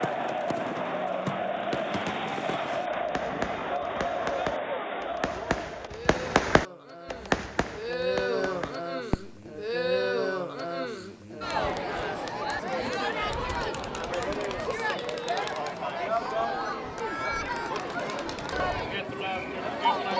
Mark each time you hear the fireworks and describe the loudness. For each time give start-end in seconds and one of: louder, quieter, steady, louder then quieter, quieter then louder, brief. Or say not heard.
0.0-9.7 louder then quieter.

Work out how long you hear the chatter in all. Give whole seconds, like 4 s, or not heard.
20 s.